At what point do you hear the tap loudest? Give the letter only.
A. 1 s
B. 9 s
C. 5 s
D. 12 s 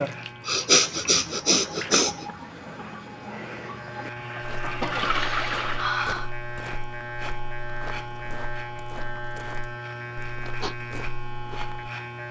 C.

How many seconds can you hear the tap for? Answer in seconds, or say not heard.
6 s.